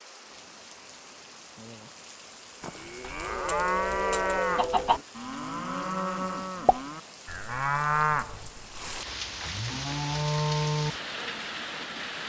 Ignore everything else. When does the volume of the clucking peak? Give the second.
5 s.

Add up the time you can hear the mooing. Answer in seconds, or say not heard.
8 s.